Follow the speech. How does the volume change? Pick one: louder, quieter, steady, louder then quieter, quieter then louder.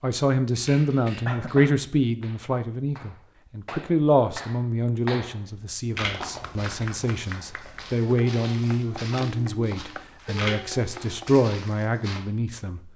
quieter then louder.